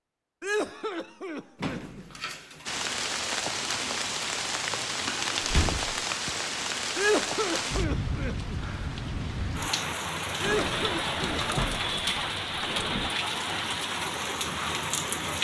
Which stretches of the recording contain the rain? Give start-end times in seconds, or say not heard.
2.6-15.3.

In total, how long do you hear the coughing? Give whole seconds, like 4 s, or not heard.
5 s.